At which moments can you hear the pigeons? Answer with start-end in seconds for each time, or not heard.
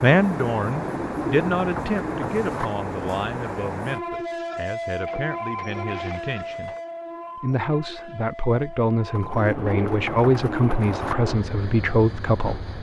0.9-2.7, 9.2-11.2.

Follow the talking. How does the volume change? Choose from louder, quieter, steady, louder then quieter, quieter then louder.
quieter then louder.